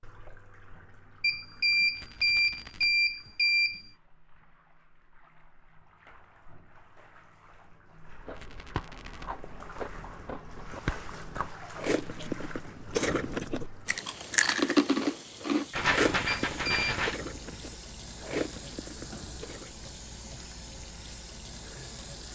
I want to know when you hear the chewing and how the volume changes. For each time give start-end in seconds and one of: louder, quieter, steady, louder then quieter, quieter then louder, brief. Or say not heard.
8.1-19.9 louder then quieter.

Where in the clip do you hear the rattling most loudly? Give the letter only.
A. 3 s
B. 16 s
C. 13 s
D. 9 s
B.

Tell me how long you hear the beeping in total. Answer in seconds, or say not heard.
3 s.